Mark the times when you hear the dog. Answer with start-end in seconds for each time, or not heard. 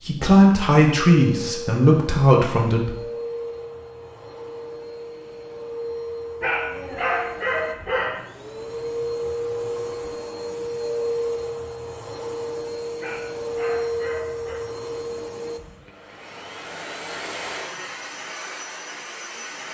6.4-8.2, 13.0-14.6.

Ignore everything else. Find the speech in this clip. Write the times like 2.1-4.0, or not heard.
0.1-3.0.